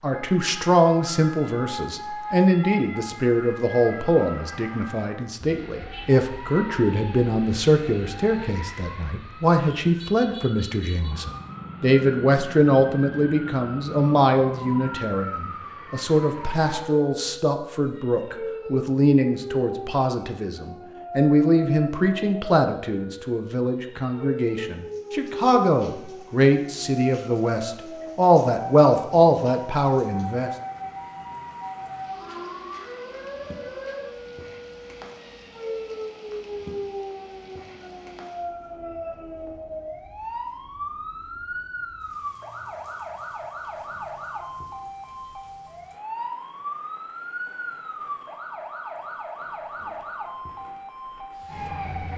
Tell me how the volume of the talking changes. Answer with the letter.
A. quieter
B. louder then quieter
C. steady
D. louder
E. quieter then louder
C.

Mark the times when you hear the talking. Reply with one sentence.
You can hear the talking from 0.0 to 30.5 s.